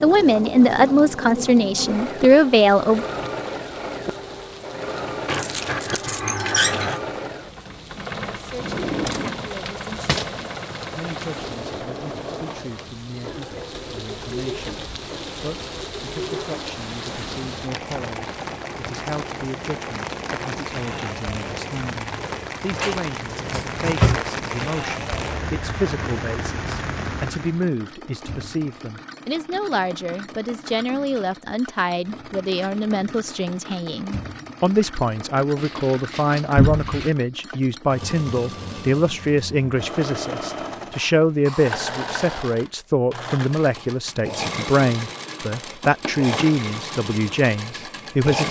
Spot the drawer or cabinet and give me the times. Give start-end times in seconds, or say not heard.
8.6-10.3, 22.8-24.2, 36.5-37.0.